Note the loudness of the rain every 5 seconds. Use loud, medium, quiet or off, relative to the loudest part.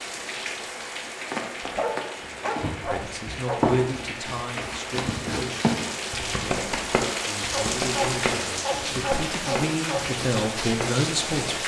medium, loud, loud.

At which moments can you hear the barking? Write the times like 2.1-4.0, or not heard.
1.6-3.6, 7.5-10.1.